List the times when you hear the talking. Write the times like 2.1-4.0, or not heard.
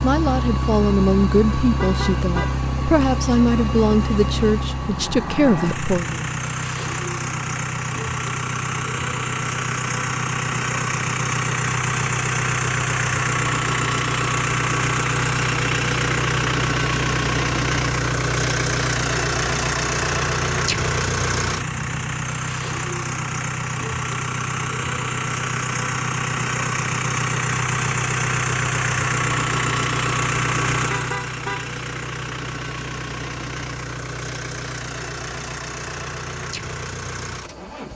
0.0-6.2.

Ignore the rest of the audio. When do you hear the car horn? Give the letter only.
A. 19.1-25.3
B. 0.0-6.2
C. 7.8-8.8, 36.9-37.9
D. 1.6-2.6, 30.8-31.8
D.